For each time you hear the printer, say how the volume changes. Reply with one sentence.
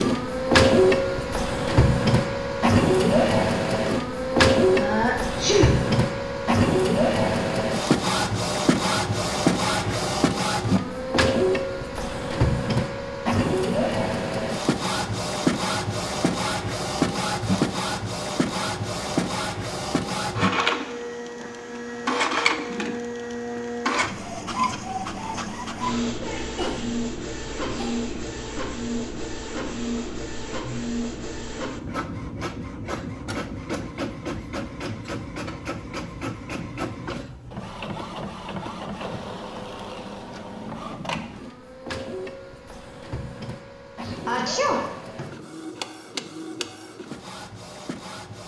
The printer can be heard from 0.0 to 48.4 s, getting quieter.